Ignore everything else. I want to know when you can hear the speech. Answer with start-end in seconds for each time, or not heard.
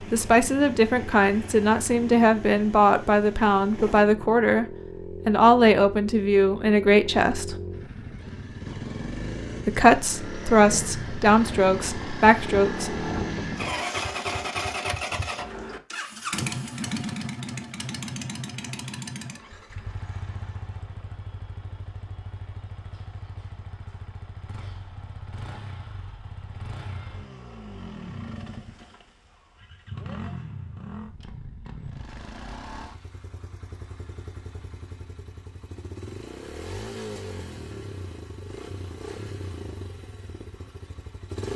0.0-4.7, 5.2-7.5, 9.7-13.1.